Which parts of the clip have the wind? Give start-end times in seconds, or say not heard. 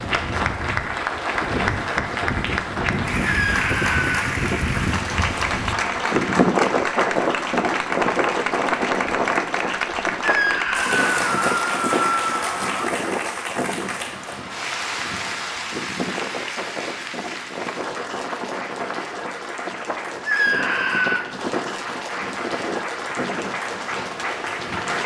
0.0-25.0.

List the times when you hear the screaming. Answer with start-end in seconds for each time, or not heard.
3.2-4.2, 10.2-12.9, 20.2-21.2.